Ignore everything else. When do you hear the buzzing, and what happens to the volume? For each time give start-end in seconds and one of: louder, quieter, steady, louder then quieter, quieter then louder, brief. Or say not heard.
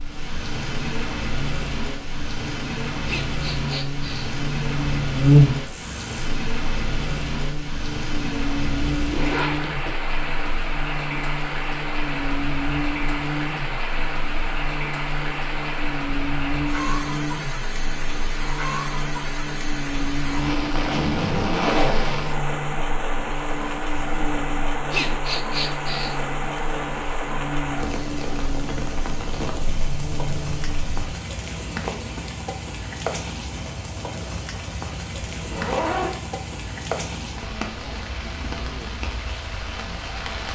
0.0-31.1 quieter.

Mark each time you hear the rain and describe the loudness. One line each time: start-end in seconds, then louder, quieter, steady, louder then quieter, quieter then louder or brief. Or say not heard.
0.0-40.4 steady.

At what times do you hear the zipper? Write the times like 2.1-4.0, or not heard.
9.0-9.9, 20.4-22.1, 35.4-36.1.